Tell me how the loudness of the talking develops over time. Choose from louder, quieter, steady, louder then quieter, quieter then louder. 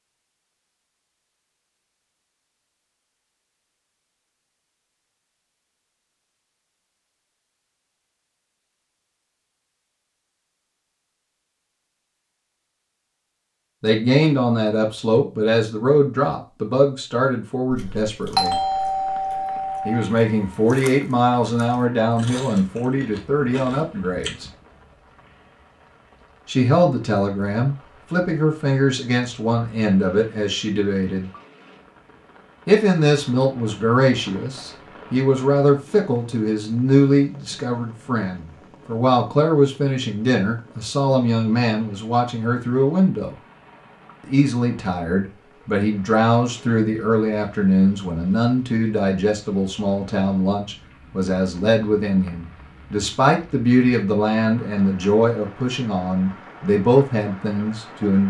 steady.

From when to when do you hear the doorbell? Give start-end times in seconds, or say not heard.
17.7-20.1.